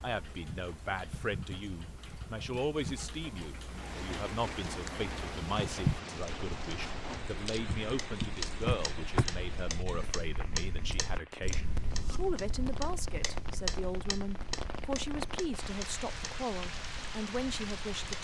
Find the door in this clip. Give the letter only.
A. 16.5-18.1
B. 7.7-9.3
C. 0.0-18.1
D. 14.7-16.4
B.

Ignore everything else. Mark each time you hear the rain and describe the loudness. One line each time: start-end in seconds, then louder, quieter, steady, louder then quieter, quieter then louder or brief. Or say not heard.
3.6-18.1 quieter then louder.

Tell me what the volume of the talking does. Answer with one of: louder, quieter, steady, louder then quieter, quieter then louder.
steady.